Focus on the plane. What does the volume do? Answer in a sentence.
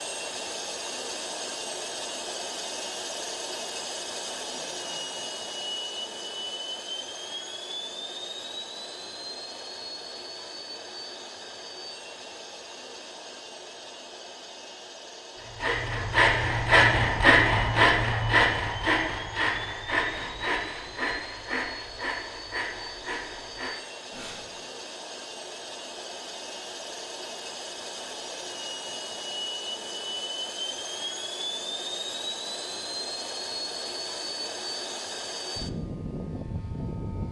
The loudness of the plane goes down, then up.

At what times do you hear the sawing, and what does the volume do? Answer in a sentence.
You can hear the sawing from 15.4 to 24.6 s, getting quieter.